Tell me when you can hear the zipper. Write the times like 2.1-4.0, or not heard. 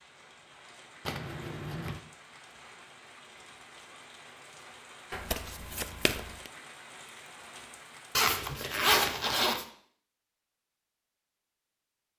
8.2-9.7.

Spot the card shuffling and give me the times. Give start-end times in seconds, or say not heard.
1.1-2.0, 5.1-6.5, 8.3-9.5.